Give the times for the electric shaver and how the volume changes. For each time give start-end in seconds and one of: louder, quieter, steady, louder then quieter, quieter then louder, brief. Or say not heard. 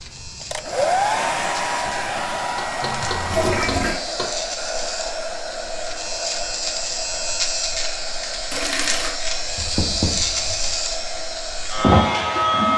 0.0-12.7 louder.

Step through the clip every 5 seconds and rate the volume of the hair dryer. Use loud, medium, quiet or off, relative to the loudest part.
loud, medium, medium.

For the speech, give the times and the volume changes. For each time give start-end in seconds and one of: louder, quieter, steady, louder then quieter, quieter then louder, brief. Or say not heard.
not heard.